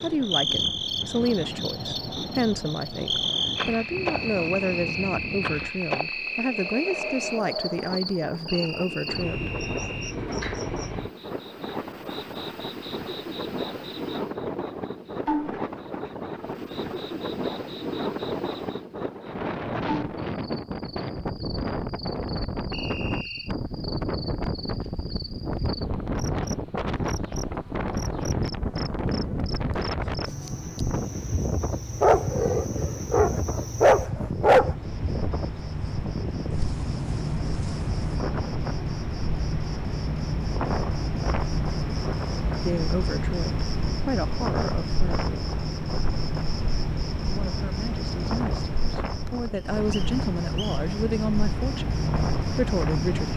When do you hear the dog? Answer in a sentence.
You can hear the dog from 32.0 to 34.8 s.